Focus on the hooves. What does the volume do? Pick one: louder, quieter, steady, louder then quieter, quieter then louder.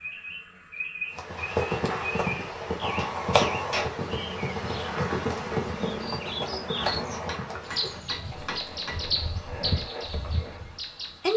quieter.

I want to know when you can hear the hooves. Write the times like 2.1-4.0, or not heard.
1.1-10.8.